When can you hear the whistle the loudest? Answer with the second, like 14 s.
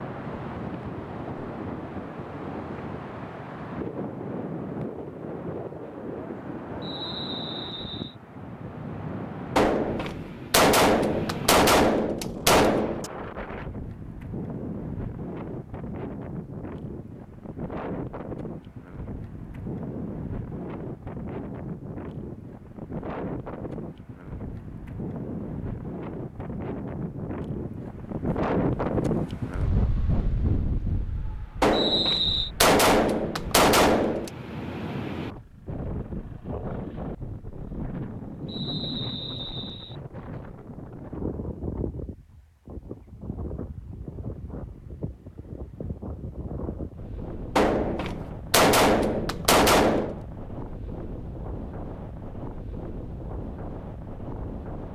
32 s.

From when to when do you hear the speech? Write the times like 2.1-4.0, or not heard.
not heard.